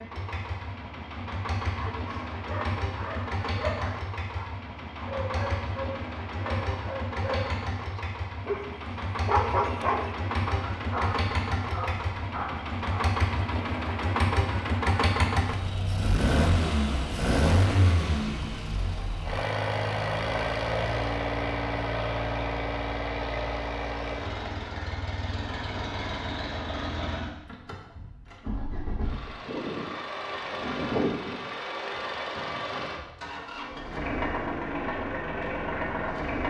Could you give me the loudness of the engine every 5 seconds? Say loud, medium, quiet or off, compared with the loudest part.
medium, medium, loud, loud, loud, medium, loud, loud.